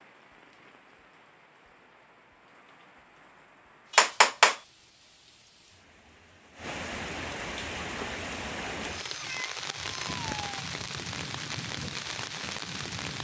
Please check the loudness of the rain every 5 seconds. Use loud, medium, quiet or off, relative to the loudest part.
quiet, loud, loud.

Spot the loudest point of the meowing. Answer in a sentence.
The loudest moment of the meowing is at 4 seconds.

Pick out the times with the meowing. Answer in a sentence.
The meowing can be heard from 3.9 to 4.5 s and from 9.1 to 10.7 s.